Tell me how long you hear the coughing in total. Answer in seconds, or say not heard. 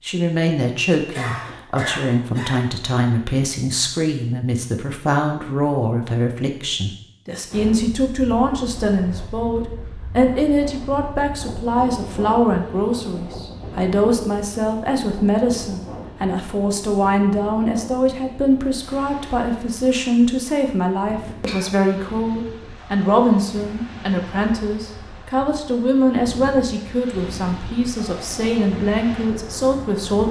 2 s.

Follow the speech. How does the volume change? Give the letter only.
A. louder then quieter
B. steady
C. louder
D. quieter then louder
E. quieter
B.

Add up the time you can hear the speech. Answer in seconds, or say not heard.
30 s.